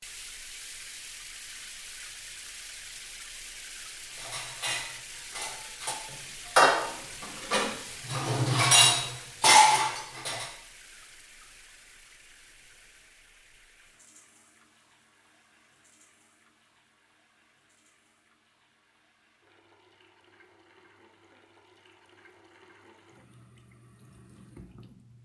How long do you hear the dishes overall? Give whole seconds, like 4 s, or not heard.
6 s.